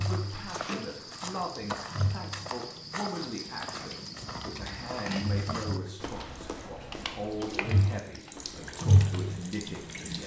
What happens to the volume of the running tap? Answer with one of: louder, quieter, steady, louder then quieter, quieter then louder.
quieter then louder.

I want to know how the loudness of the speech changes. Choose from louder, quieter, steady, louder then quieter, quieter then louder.
steady.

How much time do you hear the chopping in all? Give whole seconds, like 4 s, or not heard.
not heard.